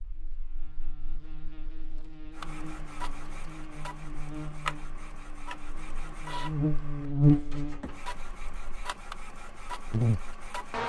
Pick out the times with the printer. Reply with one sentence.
You can hear the printer from 2.3 to 10.8 s.